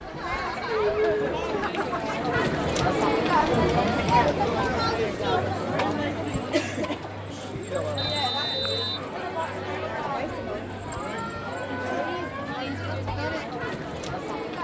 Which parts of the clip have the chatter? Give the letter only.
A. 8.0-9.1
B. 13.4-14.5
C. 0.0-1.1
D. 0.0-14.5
D.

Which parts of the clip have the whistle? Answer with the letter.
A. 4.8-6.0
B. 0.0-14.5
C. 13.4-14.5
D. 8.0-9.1
D.